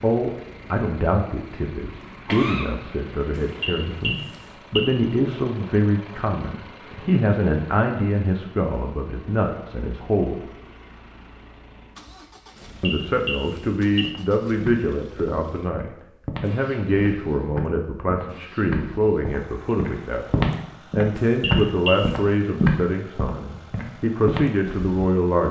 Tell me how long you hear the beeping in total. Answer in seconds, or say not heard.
4 s.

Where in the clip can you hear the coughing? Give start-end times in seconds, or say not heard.
2.0-2.6.